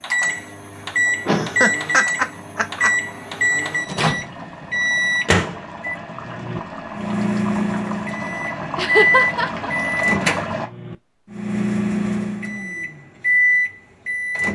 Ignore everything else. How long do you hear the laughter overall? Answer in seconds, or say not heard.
3 s.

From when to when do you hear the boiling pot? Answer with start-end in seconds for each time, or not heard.
0.0-10.7.